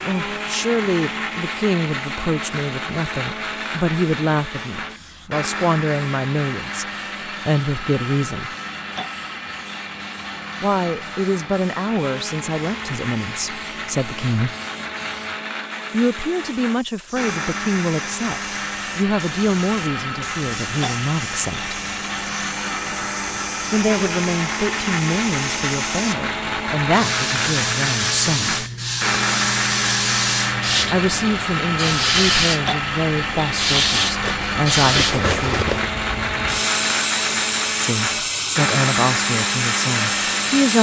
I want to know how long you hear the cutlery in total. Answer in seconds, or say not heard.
2 s.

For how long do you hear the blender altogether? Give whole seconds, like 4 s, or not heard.
41 s.